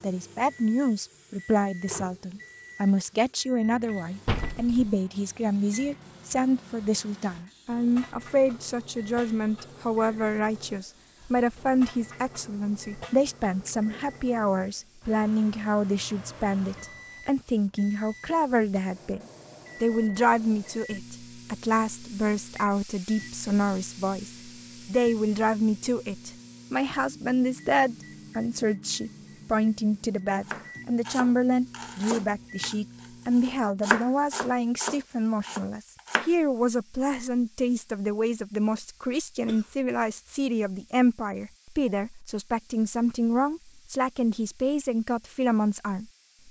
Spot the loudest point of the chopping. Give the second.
34 s.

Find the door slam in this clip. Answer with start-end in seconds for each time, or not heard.
4.2-5.0.